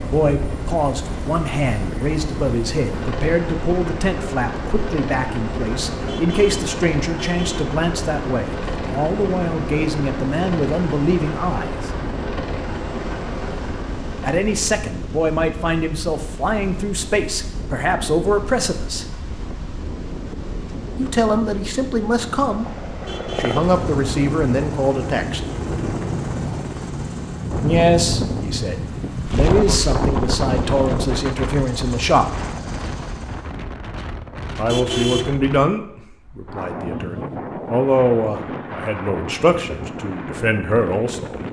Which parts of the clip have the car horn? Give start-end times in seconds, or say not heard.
6.0-7.8, 23.0-23.8, 34.6-35.4.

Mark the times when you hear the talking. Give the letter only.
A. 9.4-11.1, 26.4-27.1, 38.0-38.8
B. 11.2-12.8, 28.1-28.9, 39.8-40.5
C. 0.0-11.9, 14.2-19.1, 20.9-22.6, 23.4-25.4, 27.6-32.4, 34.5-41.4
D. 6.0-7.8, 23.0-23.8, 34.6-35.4
C.